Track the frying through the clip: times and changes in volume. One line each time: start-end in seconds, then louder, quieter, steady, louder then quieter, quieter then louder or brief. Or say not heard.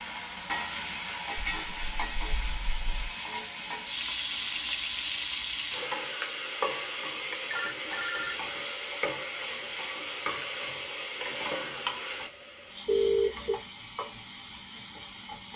0.0-15.5 quieter.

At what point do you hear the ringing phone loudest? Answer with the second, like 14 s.
13 s.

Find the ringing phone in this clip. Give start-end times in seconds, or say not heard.
1.4-3.1, 7.5-8.4, 12.8-13.6.